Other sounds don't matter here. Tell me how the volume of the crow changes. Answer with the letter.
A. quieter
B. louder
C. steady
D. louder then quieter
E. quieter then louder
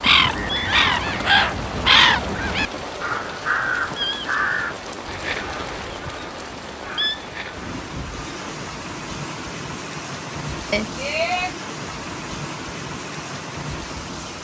A.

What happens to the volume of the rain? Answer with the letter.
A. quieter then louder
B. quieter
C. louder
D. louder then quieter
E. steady
E.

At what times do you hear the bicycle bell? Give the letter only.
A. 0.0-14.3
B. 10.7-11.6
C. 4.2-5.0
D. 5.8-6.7
B.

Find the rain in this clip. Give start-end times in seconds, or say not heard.
0.0-14.3.